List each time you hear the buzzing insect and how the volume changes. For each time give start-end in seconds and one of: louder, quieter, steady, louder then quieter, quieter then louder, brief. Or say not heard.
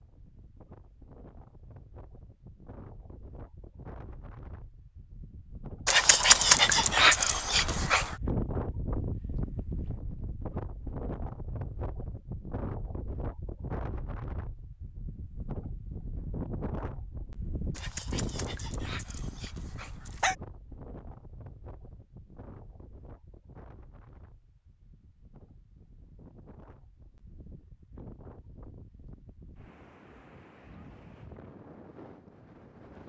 not heard.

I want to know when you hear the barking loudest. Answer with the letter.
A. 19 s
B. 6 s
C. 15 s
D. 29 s
B.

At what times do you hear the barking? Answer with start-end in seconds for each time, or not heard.
5.8-8.2, 17.8-20.4.